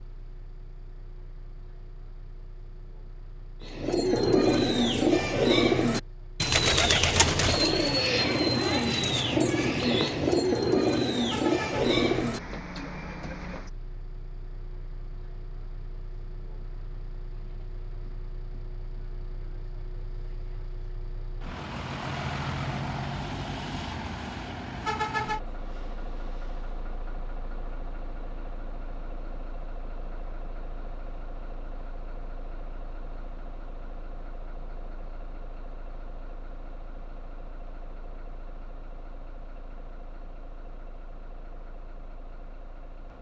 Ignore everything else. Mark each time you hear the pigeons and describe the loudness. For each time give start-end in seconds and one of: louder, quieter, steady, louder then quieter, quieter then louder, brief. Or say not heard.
3.6-12.4 steady.